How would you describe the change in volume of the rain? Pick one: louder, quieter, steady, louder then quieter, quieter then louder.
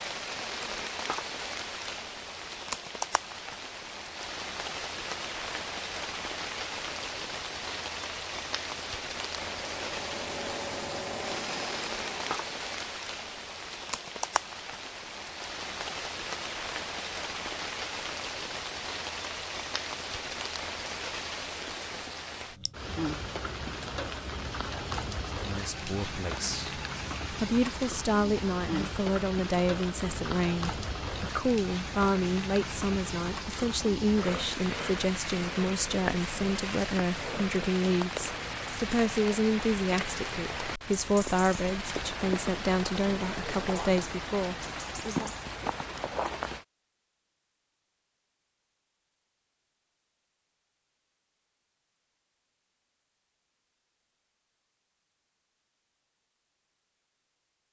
steady.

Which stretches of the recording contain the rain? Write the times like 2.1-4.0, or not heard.
0.0-46.6.